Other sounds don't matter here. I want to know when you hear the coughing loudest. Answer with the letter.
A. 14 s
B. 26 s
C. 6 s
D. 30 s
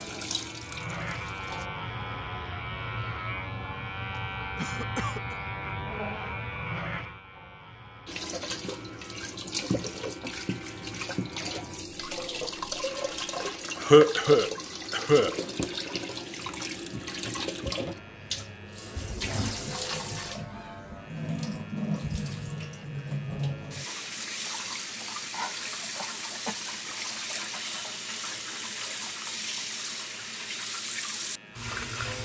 A.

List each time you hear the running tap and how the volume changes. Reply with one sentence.
The running tap can be heard briefly from 0.0 to 1.7 s; and from 8.1 to 32.2 s, at a steady volume.